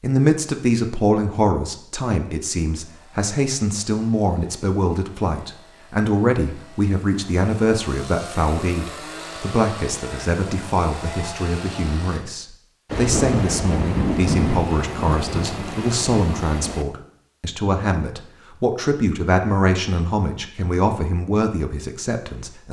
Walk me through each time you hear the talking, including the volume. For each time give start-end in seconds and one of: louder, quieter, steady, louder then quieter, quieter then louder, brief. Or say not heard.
0.0-22.6 steady.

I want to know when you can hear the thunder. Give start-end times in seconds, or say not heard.
12.8-16.9.